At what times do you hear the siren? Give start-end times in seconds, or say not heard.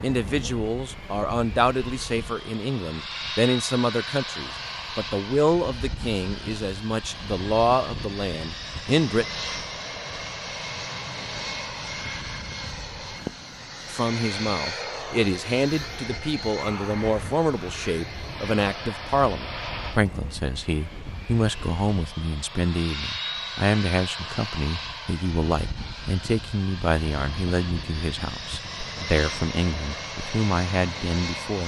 not heard.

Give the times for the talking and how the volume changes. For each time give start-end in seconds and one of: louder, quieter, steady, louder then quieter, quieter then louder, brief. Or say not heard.
0.0-9.2 steady
13.9-31.6 steady.